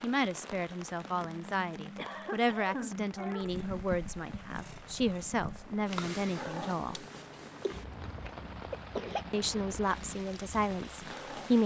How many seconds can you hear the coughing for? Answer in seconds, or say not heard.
4 s.